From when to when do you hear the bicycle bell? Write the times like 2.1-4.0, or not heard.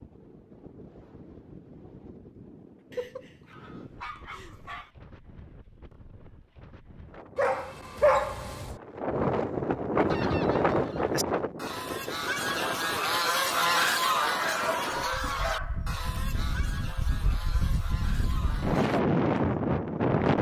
not heard.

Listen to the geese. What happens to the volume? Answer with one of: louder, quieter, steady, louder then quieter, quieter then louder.
louder then quieter.